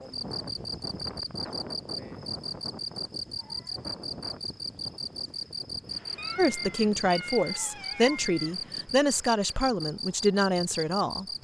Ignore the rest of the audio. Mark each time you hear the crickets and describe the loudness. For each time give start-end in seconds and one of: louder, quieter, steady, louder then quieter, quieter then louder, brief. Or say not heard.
0.0-11.3 steady.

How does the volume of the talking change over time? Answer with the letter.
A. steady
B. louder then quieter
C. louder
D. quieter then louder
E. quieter
A.